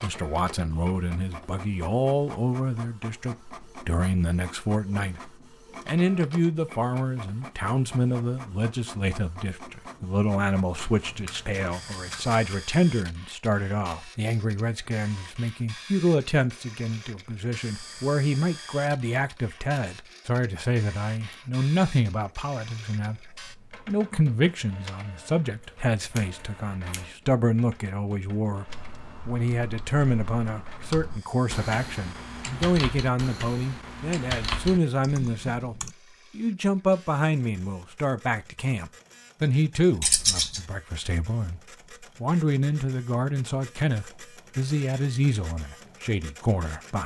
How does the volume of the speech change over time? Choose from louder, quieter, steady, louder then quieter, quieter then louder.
steady.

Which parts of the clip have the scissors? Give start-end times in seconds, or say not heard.
10.8-12.6, 26.0-27.1, 40.0-40.6.